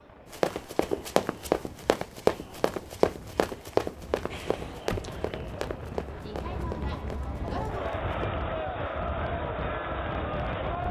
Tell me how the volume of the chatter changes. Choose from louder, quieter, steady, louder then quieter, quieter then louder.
louder.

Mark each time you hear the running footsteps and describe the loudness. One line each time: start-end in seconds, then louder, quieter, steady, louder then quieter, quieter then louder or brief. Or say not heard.
0.3-8.3 quieter.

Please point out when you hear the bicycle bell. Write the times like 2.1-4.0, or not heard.
4.3-5.2.